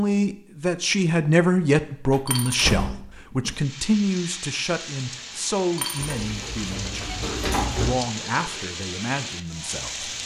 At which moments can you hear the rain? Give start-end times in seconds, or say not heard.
3.5-10.2.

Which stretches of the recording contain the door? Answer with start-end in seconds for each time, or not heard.
2.1-3.5, 6.0-8.0.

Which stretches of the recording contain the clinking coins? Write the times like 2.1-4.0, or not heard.
2.2-2.7, 5.8-6.2.